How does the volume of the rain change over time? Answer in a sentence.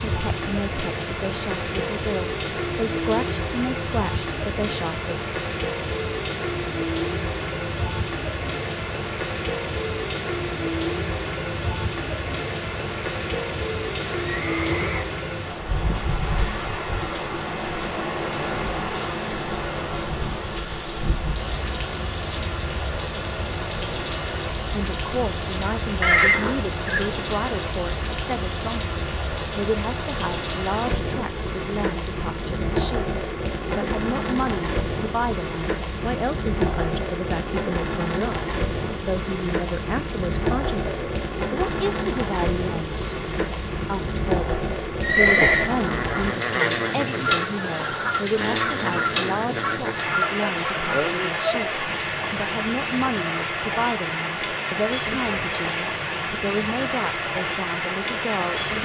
The loudness of the rain stays about the same.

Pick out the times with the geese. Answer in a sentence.
You can hear the geese from 45.2 to 51.7 s.